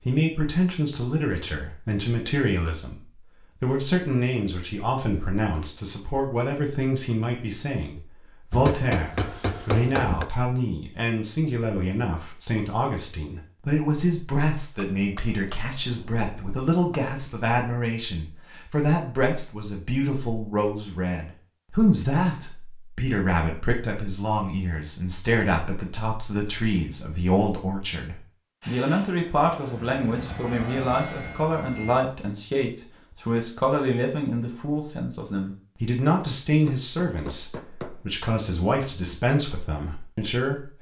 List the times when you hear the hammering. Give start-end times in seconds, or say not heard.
8.5-10.3, 14.8-17.0, 36.6-38.0.